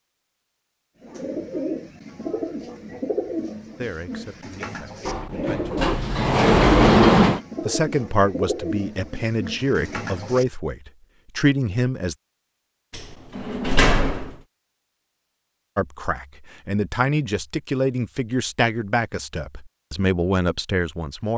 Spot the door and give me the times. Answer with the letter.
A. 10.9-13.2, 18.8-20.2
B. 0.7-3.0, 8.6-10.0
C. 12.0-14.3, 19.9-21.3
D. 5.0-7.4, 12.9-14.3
D.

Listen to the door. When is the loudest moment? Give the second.
7 s.